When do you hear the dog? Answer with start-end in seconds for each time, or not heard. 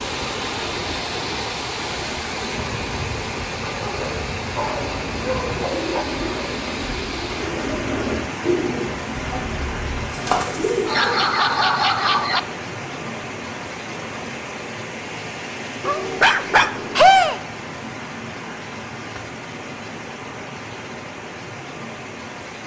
3.8-6.0, 10.8-12.4, 15.8-17.4.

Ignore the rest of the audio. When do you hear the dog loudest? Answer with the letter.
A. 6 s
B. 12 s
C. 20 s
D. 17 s
D.